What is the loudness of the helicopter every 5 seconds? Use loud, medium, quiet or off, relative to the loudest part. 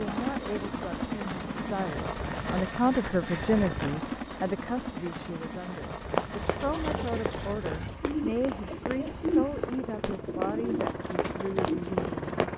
loud, medium, loud.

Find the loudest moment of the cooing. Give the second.
9 s.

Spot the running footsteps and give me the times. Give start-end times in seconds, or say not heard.
6.1-12.5.